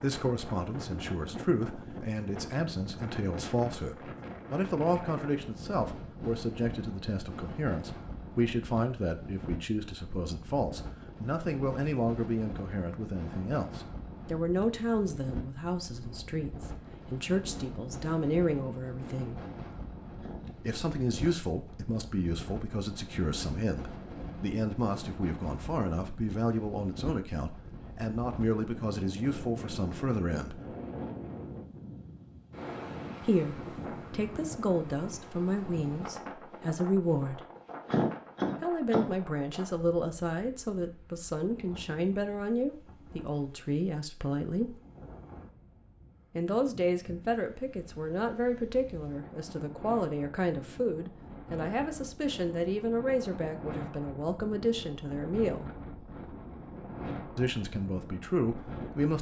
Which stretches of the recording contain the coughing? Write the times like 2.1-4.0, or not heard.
20.2-21.4, 37.9-39.1.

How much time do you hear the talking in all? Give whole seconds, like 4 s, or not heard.
51 s.